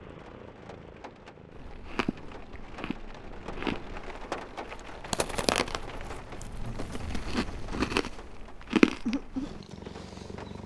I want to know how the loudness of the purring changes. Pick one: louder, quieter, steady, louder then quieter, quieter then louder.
louder.